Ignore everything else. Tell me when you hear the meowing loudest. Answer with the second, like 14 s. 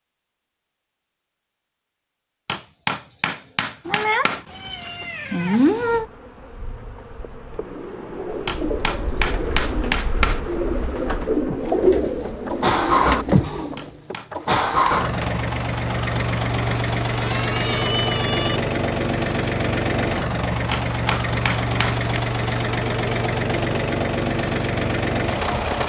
6 s.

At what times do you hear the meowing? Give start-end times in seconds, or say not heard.
3.9-6.0, 17.1-18.6.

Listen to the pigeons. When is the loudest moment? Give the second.
12 s.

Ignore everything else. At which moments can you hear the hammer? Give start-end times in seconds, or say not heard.
2.5-4.5, 8.4-10.4, 13.8-15.3, 20.7-22.2.